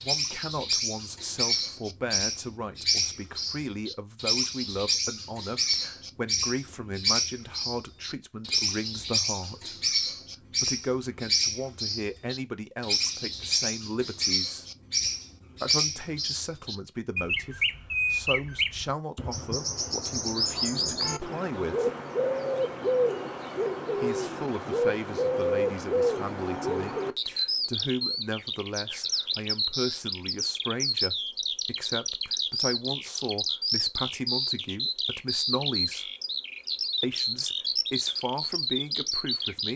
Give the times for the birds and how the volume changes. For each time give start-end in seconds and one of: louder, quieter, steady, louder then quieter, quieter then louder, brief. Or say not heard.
0.0-39.7 steady.